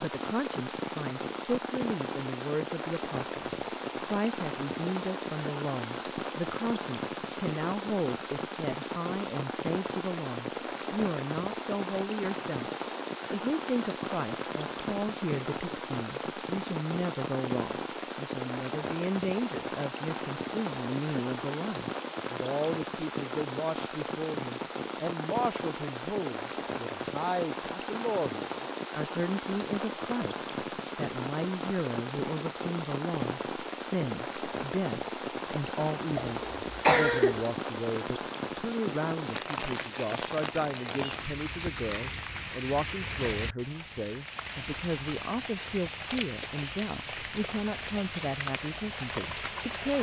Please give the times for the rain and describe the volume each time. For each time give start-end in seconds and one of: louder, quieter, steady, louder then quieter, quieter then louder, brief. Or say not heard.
0.0-49.9 steady.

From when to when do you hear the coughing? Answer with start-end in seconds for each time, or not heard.
36.1-37.5.